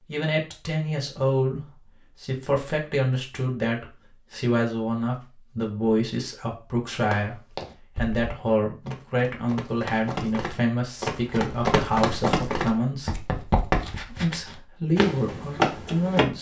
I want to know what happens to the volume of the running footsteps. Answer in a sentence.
The volume of the running footsteps goes up.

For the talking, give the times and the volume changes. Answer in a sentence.
The talking can be heard from 0.1 to 13.2 s, at a steady volume; and briefly from 14.1 to 16.3 s.